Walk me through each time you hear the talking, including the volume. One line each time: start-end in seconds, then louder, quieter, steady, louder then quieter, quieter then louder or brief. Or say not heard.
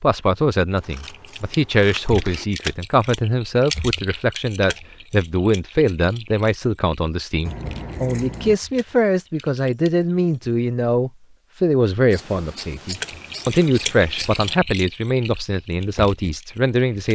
0.0-17.1 steady.